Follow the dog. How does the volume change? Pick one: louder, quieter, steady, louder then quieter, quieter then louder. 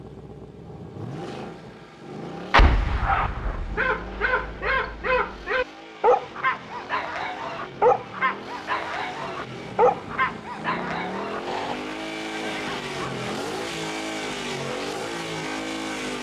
quieter.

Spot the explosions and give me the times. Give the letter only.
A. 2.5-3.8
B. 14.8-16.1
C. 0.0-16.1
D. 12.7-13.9
A.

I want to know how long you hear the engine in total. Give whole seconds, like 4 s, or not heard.
16 s.